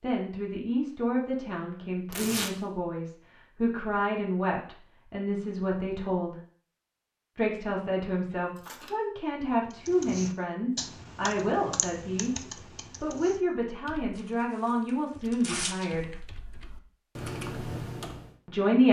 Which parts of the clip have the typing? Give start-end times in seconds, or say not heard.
9.7-18.4.